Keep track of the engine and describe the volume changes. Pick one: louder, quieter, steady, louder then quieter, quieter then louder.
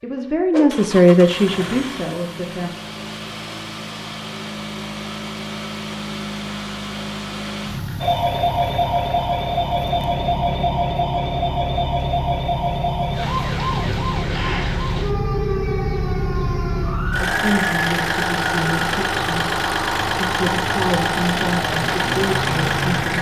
louder.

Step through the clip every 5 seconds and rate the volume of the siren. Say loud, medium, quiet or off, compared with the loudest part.
off, loud, loud, medium, medium.